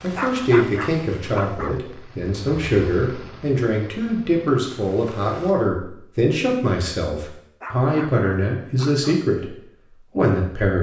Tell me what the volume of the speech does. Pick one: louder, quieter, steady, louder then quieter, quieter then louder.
steady.